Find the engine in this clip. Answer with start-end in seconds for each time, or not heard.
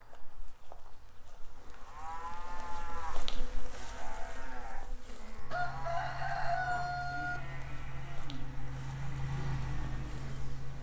5.3-10.7.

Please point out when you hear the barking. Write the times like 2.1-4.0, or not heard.
not heard.